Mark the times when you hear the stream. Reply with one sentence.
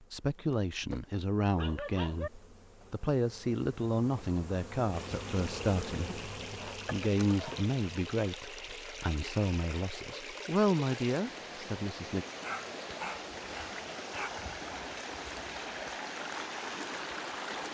The stream can be heard from 4.9 to 17.6 s.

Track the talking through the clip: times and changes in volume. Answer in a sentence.
The talking can be heard from 0.1 to 12.2 s, at a steady volume.